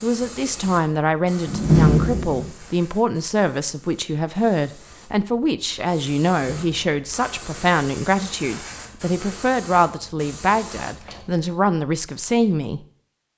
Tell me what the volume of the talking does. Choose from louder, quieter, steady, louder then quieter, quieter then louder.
steady.